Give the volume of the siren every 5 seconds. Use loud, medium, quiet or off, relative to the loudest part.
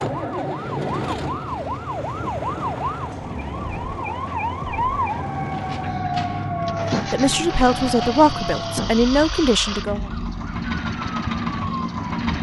loud, loud, medium.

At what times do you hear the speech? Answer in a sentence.
The speech can be heard from 7.1 to 10.1 s.